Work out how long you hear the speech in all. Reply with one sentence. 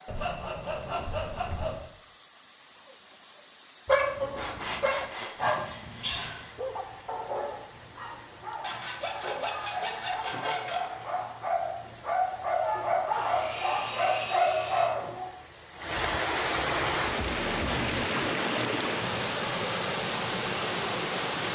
You can't hear the speech here.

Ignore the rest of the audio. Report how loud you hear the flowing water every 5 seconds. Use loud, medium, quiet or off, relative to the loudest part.
quiet, quiet, quiet, loud, loud.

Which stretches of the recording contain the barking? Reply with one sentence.
The barking can be heard from 3.9 to 15.3 s.